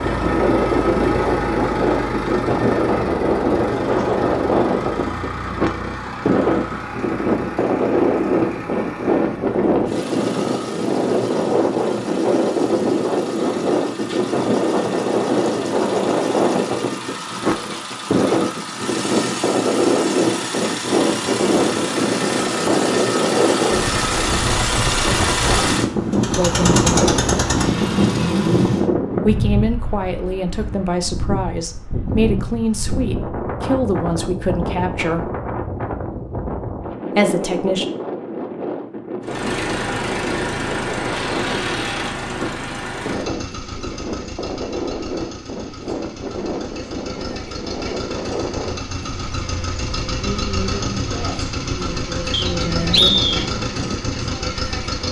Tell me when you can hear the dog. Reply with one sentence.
The dog can't be heard in this clip.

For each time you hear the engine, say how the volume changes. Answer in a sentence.
The engine can be heard from 0.0 to 28.9 s, getting quieter then louder; and from 39.2 to 55.0 s, getting quieter then louder.